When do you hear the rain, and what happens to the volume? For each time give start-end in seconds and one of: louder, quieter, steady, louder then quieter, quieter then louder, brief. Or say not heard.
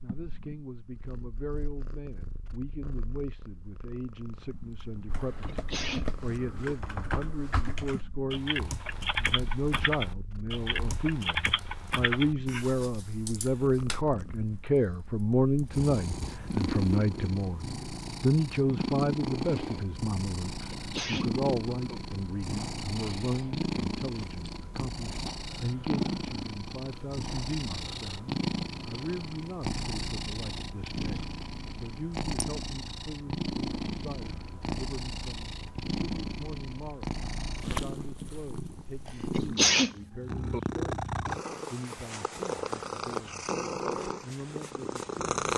not heard.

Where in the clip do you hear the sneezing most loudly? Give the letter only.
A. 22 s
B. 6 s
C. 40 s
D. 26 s
C.